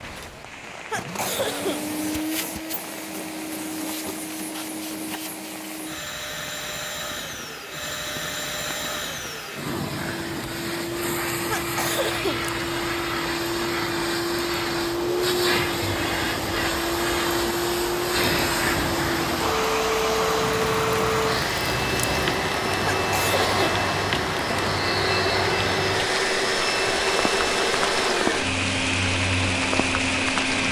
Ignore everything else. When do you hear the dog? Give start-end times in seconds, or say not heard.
not heard.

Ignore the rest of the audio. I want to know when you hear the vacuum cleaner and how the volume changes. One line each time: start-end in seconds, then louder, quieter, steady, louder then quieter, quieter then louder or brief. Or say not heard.
0.0-30.6 louder.